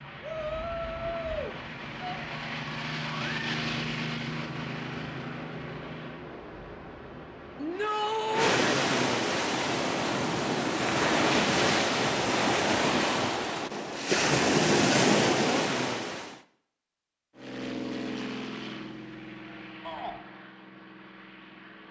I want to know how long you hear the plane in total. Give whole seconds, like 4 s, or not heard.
11 s.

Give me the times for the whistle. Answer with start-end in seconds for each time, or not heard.
not heard.